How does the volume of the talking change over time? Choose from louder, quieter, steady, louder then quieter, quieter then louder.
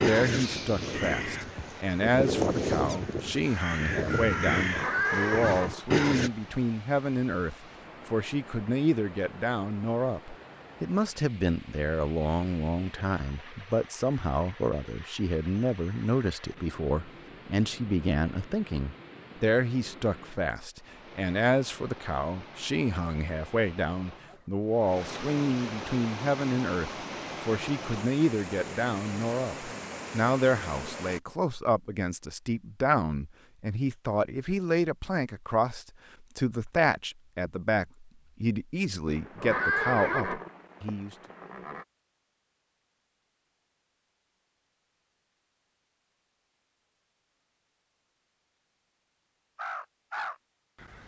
steady.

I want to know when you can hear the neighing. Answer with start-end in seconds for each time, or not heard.
4.5-6.7, 39.0-41.9.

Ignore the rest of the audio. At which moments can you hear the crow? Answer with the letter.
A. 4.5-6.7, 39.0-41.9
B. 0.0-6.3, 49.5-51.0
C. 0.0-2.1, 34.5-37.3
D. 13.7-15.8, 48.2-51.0
B.